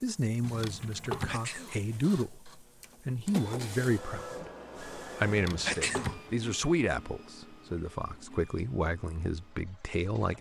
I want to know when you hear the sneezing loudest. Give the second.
6 s.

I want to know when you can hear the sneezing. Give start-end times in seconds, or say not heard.
1.2-1.8, 5.7-6.2.